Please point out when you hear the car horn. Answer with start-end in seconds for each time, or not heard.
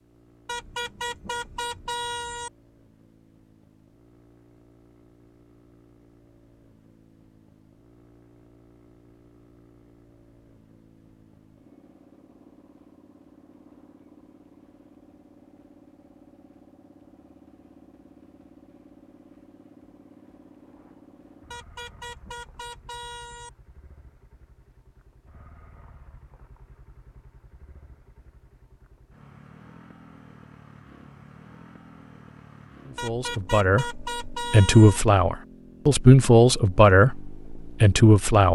0.5-2.5, 21.5-23.5, 33.0-35.0.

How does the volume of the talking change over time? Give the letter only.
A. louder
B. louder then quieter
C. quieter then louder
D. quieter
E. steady
B.